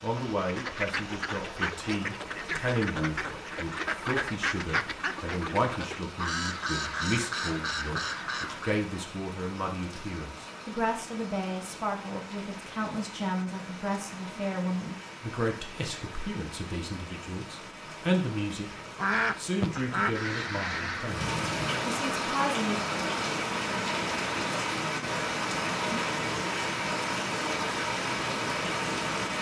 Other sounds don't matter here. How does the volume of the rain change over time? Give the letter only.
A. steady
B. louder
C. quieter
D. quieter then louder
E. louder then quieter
B.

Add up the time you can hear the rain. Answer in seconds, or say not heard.
29 s.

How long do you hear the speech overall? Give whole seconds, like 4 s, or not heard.
22 s.